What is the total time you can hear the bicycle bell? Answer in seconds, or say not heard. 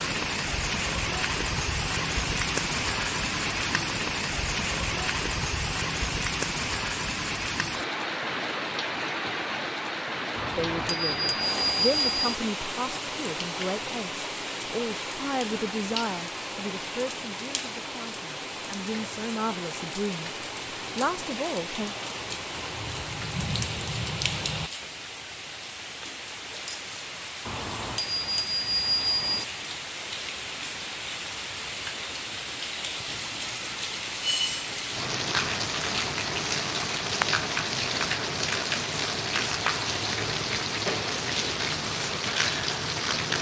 4 s.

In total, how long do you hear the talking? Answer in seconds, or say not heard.
11 s.